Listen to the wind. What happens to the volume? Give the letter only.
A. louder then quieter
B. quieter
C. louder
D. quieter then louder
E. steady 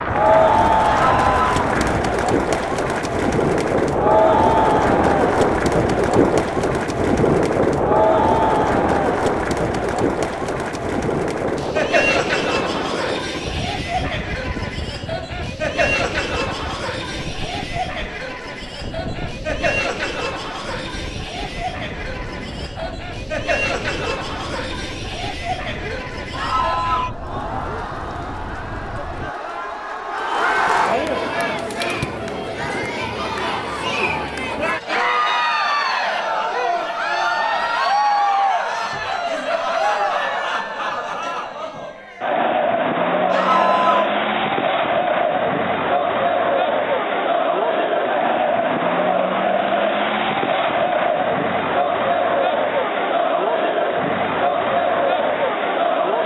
B.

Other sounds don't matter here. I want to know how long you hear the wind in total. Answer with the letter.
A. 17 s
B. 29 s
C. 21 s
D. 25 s
B.